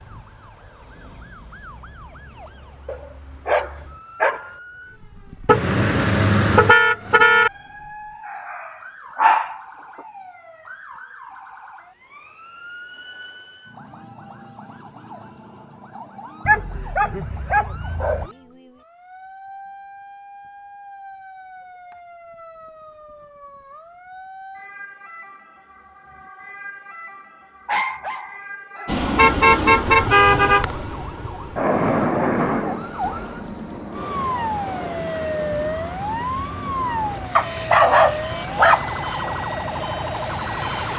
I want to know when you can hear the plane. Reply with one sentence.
You can hear the plane from 28.9 to 40.9 s.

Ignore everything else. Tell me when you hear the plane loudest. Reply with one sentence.
The volume of the plane peaks at 32 seconds.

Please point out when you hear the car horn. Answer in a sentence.
The car horn can be heard from 5.5 to 7.5 s and from 29.1 to 30.6 s.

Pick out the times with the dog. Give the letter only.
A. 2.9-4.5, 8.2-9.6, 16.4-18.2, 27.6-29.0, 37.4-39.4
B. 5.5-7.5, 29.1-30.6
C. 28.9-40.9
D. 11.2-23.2
A.